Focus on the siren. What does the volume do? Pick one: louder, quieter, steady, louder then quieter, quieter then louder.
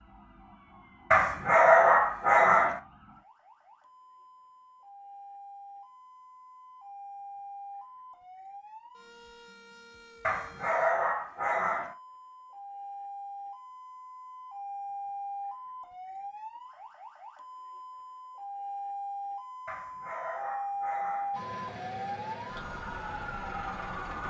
louder.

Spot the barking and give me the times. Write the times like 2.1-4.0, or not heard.
1.1-2.8, 10.2-11.9, 19.6-21.4.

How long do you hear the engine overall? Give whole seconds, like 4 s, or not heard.
3 s.